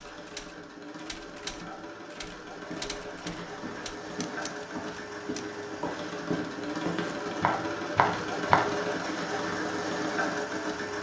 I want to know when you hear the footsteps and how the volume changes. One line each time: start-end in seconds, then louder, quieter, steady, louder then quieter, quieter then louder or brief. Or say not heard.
2.6-8.7 louder.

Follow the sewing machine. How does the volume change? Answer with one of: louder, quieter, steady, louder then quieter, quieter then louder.
louder.